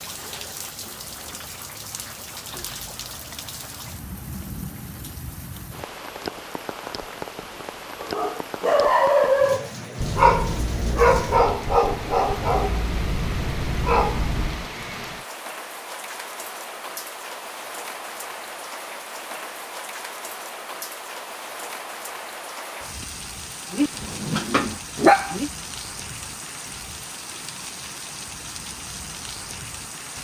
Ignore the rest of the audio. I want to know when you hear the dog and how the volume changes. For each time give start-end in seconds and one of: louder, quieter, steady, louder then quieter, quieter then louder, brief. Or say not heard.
8.0-14.7 quieter
23.7-25.5 brief.